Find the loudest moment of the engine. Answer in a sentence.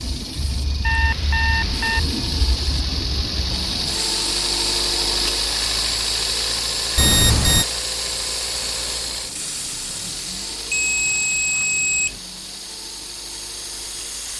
The volume of the engine peaks at 5 seconds.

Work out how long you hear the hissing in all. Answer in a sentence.
You can hear the hissing for 14 seconds altogether.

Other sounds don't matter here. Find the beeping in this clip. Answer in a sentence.
The beeping can be heard from 0.8 to 2.0 s, from 7.0 to 7.7 s and from 10.7 to 12.2 s.